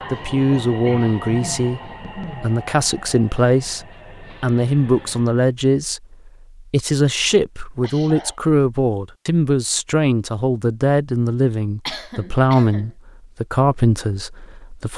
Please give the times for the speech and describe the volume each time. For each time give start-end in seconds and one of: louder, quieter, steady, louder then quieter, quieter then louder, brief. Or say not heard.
0.1-14.9 steady.